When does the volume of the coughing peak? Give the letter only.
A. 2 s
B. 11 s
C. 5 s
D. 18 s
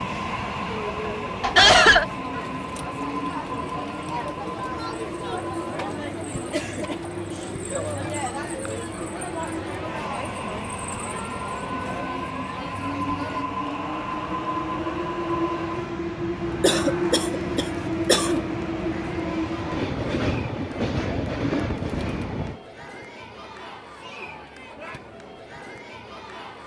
A.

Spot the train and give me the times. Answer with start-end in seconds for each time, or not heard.
0.0-22.6.